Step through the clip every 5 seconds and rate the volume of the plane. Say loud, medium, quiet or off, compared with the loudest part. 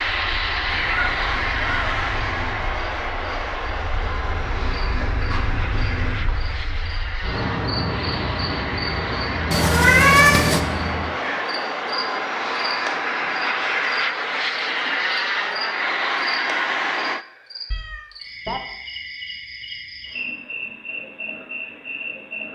loud, medium, loud, loud, off.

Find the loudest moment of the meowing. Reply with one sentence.
The loudest moment of the meowing is at 10 seconds.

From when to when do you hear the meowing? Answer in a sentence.
The meowing can be heard from 0.7 to 2.1 s, from 9.5 to 10.6 s and from 17.7 to 18.6 s.